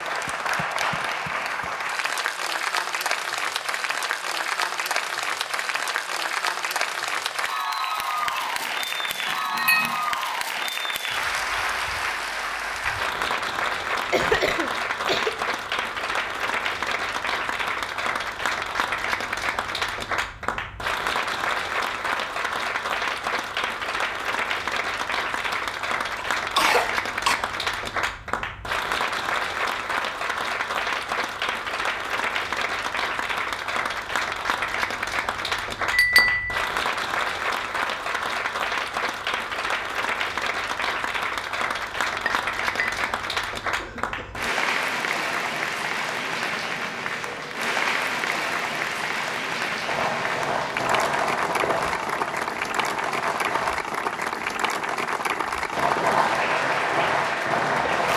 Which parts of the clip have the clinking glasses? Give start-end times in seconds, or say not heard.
8.2-8.7, 9.2-10.0, 35.9-36.6, 42.1-43.0.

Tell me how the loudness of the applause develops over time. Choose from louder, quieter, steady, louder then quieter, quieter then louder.
steady.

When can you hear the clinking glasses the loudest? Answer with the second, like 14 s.
36 s.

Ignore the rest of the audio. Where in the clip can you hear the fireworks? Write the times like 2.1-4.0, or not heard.
49.9-53.8, 55.7-58.1.